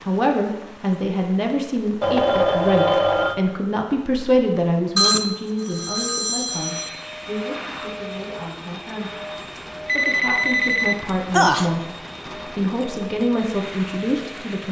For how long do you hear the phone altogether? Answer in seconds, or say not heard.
5 s.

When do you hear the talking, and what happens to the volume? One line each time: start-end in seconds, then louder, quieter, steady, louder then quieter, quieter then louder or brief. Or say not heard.
0.0-14.6 quieter then louder.